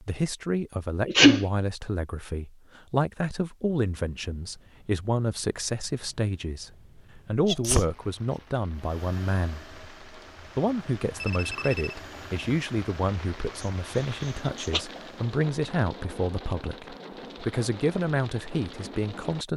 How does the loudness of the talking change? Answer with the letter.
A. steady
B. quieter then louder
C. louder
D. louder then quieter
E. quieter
A.